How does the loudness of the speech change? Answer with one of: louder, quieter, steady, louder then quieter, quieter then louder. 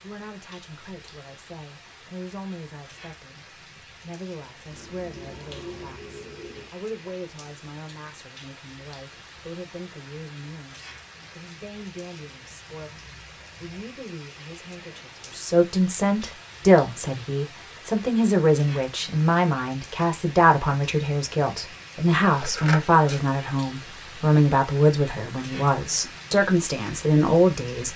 louder.